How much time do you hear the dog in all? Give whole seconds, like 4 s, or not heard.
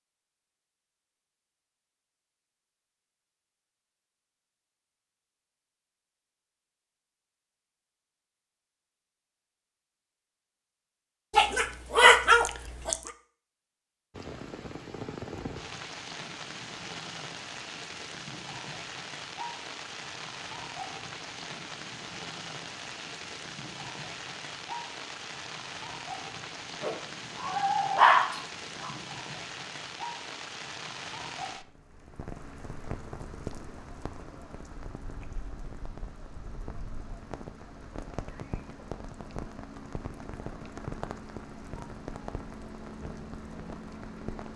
4 s.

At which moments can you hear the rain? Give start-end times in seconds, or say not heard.
14.1-44.5.